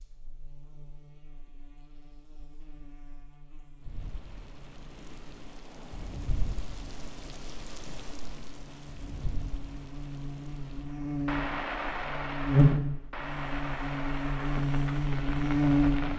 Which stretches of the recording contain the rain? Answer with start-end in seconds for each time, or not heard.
3.8-16.1.